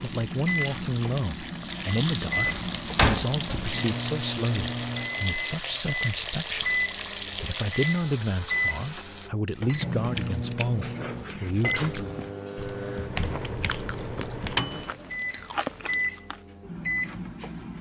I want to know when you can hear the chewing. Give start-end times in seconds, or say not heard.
9.6-16.4.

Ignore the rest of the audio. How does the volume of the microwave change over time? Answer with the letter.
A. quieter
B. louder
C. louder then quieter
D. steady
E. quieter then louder
D.